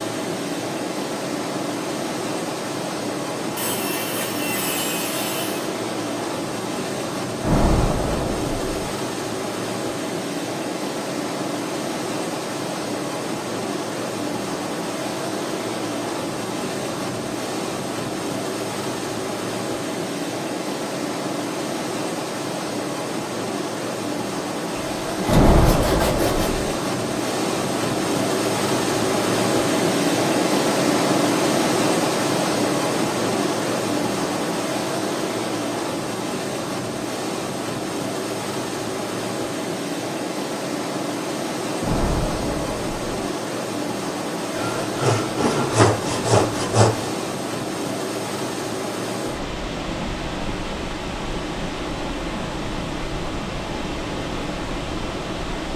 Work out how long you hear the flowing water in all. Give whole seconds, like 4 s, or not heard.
56 s.